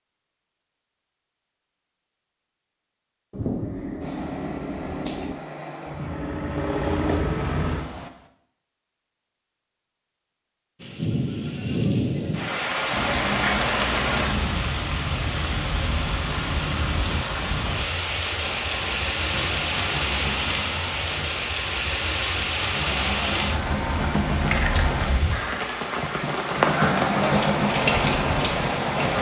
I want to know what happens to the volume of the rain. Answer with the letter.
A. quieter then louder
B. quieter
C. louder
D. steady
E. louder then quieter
D.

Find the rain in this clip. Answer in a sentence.
The rain can be heard from 10.8 to 29.1 s.